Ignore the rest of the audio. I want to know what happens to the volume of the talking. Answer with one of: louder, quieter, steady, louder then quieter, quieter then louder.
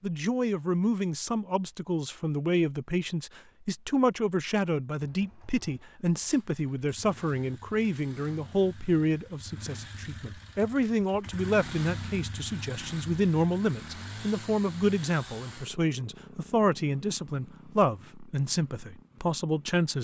steady.